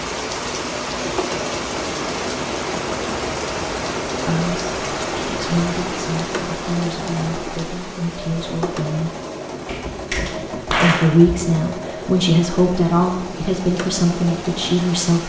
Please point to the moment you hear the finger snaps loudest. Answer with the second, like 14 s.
11 s.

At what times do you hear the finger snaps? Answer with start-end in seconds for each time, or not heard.
9.7-11.3.